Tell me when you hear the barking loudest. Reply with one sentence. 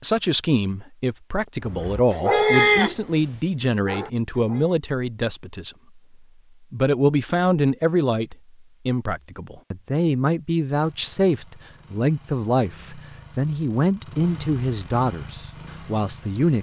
The loudest moment of the barking is at 3 seconds.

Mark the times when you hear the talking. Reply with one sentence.
The talking can be heard from 0.0 to 5.8 s and from 6.7 to 16.5 s.